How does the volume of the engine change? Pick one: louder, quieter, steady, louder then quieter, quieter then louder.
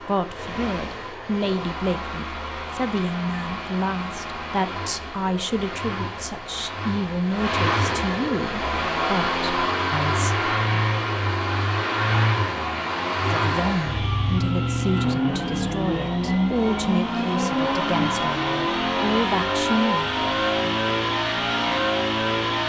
louder.